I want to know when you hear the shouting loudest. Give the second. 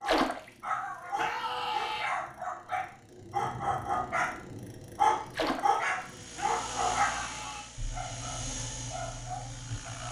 2 s.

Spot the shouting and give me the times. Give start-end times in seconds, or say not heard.
1.1-2.1, 6.3-7.7.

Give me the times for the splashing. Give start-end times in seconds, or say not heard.
0.1-0.5, 5.3-5.8.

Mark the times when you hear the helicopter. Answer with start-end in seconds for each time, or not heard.
5.8-10.0.